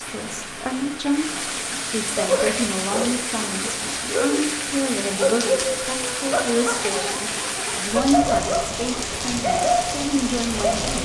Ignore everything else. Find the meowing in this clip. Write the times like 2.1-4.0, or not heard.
not heard.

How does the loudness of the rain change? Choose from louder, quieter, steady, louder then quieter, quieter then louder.
steady.